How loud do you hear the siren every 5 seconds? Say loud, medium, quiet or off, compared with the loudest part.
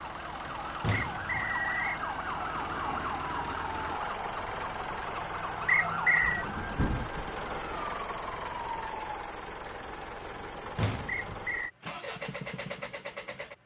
loud, loud, off.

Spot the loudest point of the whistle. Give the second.
6 s.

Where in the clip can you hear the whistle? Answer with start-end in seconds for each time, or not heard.
0.9-2.0, 5.7-6.5, 11.2-11.7.